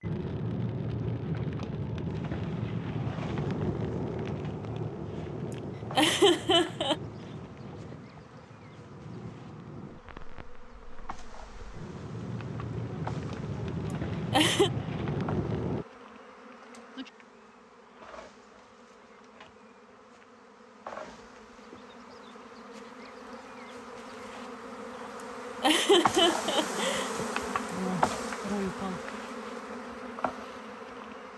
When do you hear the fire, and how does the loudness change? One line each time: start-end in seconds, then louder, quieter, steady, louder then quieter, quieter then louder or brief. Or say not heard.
0.0-15.8 quieter then louder.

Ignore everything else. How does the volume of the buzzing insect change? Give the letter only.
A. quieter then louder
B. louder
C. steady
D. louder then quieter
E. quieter
B.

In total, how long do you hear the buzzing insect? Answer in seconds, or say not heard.
29 s.